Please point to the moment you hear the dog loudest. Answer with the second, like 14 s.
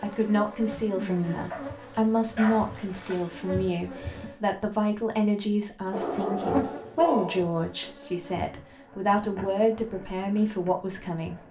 6 s.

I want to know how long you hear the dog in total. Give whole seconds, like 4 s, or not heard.
3 s.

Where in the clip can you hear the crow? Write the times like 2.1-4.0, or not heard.
not heard.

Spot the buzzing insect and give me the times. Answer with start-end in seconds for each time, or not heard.
0.0-4.4, 6.0-11.4.